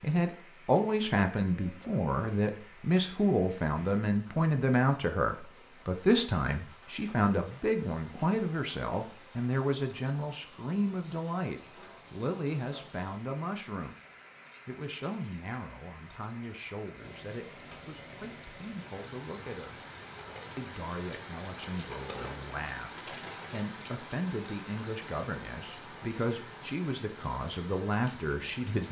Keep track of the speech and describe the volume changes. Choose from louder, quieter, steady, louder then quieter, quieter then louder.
quieter then louder.